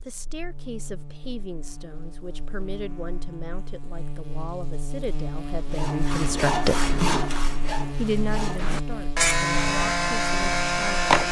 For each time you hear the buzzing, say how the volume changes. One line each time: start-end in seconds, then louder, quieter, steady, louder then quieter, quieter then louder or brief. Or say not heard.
0.0-11.2 louder.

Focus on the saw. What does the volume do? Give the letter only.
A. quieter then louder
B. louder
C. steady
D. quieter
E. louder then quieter
A.